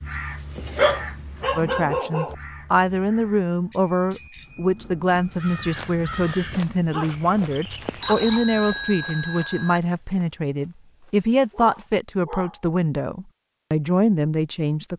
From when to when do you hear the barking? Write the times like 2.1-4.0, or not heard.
0.6-2.4, 6.9-8.4, 11.5-12.6.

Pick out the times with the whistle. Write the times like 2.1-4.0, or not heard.
not heard.